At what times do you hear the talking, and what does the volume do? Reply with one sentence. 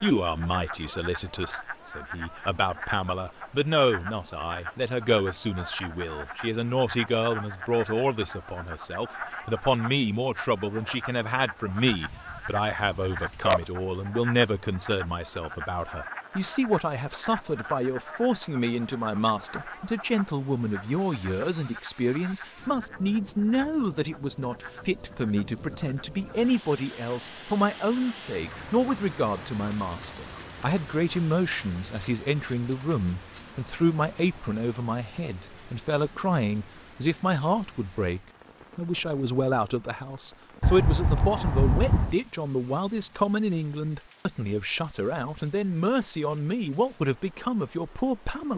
The talking can be heard from 0.0 to 48.5 s, at a steady volume.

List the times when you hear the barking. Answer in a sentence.
You can hear the barking from 11.9 to 13.6 s and from 40.6 to 42.1 s.